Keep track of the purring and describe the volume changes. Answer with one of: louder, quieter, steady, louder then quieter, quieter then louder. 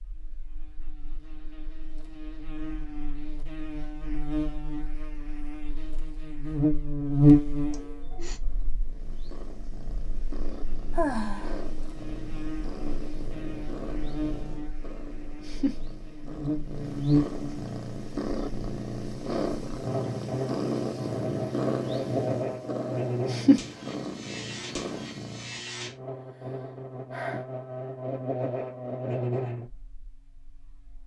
louder.